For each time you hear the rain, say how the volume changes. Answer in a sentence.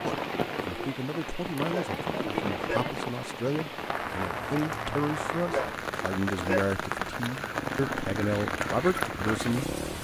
The rain can be heard from 0.0 to 9.9 s, at a steady volume.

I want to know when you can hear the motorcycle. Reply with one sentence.
You can hear the motorcycle from 7.5 to 9.9 s.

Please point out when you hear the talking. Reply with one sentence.
You can hear the talking from 0.0 to 9.8 s.